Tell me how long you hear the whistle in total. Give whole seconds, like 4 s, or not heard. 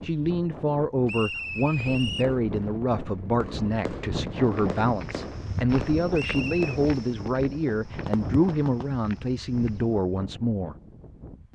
2 s.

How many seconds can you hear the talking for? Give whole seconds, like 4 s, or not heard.
11 s.